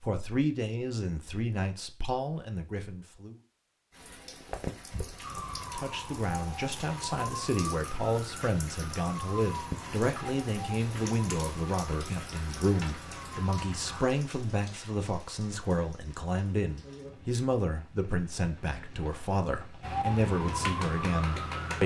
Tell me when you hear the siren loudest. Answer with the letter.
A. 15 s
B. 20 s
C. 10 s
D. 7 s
B.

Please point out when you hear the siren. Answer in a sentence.
The siren can be heard from 5.2 to 14.1 s and from 19.8 to 21.8 s.